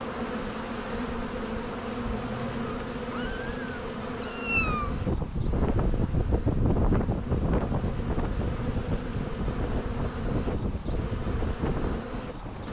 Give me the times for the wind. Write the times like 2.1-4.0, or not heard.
0.0-12.6.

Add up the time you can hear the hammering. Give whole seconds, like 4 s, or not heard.
not heard.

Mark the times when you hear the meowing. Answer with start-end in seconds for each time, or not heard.
2.4-5.0.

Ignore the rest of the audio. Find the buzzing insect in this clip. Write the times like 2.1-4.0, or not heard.
0.0-12.6.